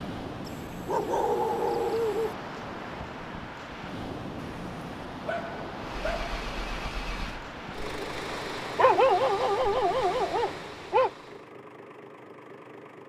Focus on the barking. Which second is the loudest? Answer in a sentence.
The loudest moment of the barking is at 9 seconds.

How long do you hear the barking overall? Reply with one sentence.
The barking can be heard for 6 seconds in total.